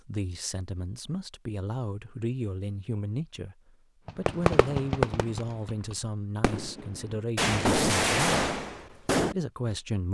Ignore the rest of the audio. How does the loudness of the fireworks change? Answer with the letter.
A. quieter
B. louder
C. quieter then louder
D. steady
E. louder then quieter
C.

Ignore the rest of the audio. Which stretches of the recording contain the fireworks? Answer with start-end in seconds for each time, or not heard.
4.0-9.3.